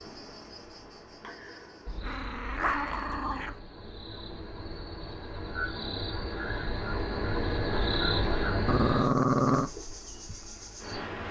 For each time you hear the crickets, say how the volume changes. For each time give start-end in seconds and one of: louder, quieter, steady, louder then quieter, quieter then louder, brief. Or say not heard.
0.0-11.2 louder then quieter.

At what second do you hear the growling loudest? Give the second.
9 s.